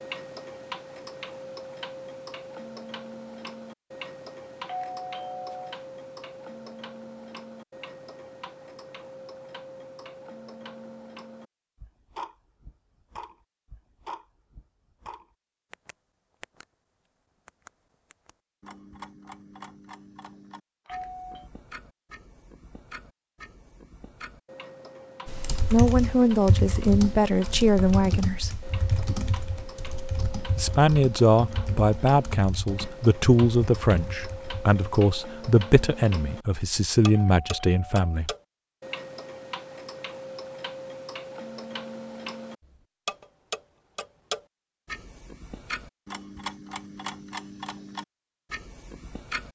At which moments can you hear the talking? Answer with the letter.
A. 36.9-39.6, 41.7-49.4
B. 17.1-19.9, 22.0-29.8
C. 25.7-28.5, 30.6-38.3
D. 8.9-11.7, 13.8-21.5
C.